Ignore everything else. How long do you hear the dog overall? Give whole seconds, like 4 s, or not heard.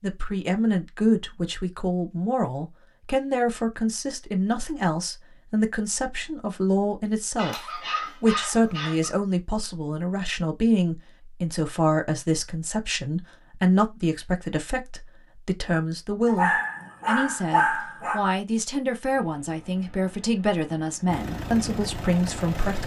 4 s.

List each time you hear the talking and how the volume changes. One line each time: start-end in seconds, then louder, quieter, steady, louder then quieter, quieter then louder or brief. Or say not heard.
0.0-22.8 steady.